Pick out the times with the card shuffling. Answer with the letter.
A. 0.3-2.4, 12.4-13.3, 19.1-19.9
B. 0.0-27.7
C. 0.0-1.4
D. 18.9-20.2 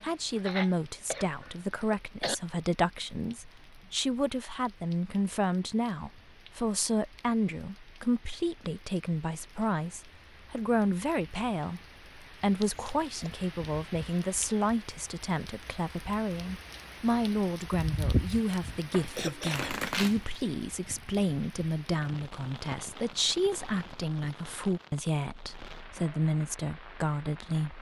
D.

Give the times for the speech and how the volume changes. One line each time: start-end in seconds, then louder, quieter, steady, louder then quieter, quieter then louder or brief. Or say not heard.
0.0-27.7 steady.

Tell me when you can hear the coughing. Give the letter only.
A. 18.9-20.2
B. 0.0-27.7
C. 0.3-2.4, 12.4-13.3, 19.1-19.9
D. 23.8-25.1
C.